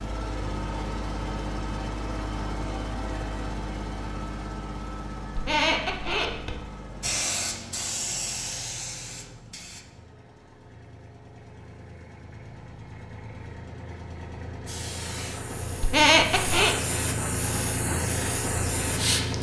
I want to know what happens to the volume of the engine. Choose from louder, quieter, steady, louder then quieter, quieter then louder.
quieter then louder.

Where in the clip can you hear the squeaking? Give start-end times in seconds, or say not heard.
5.3-6.5, 15.8-16.8.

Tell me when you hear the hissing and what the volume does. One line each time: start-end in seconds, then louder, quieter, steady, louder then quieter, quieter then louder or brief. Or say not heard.
7.0-9.8 brief
14.7-19.3 louder.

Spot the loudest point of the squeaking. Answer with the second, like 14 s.
16 s.